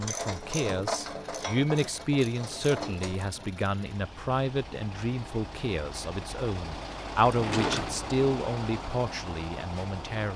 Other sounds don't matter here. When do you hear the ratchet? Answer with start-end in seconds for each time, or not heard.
0.0-3.3.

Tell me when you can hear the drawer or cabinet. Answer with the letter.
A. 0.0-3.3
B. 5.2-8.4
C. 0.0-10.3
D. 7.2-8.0
D.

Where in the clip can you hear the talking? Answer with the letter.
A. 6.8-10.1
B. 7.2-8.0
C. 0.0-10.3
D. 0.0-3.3
C.